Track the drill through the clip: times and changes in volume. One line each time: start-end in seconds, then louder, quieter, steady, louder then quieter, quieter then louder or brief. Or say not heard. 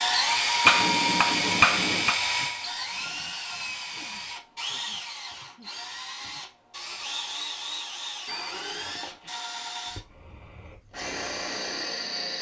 0.0-12.3 quieter.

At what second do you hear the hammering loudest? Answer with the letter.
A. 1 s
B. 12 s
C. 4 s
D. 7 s
A.